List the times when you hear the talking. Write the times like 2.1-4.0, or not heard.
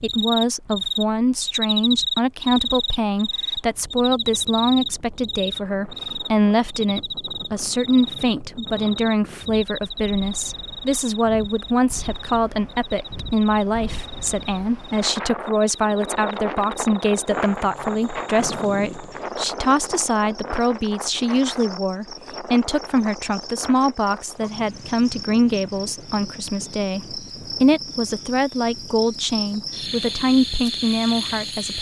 0.0-31.7.